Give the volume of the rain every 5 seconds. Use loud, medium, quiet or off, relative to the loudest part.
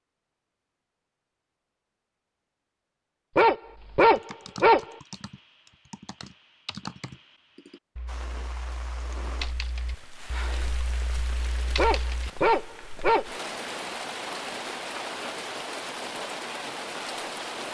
off, medium, loud, loud.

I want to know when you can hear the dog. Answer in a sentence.
You can hear the dog from 3.4 to 4.8 s and from 11.8 to 13.2 s.